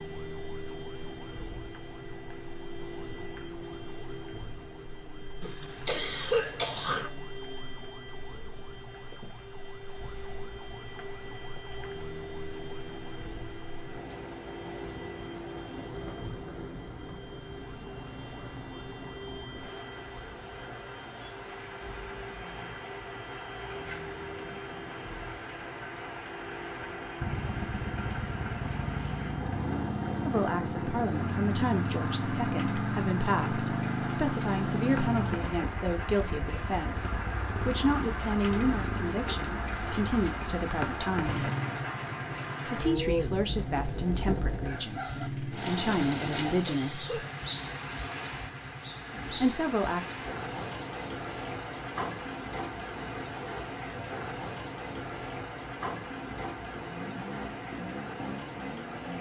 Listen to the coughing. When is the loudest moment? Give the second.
6 s.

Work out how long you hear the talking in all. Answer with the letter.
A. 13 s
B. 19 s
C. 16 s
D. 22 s
C.